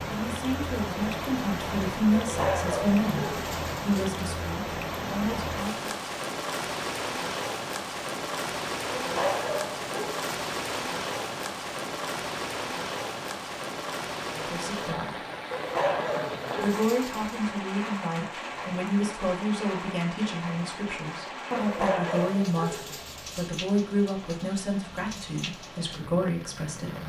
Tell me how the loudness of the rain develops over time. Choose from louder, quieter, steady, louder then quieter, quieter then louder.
quieter.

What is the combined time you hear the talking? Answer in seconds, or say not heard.
17 s.